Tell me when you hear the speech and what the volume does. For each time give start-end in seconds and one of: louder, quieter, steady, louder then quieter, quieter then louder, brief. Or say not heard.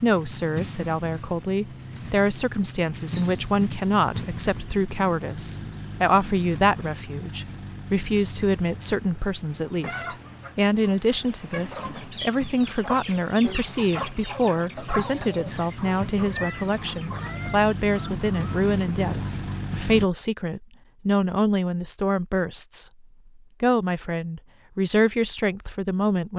0.0-22.9 steady
23.6-26.3 brief.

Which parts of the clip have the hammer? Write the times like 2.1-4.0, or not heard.
not heard.